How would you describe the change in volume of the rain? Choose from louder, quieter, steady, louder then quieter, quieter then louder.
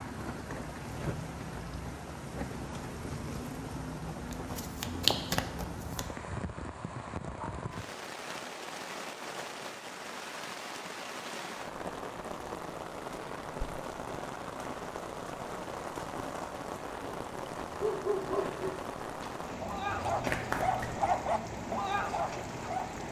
steady.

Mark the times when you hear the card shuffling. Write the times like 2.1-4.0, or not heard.
4.3-6.0, 20.0-21.0.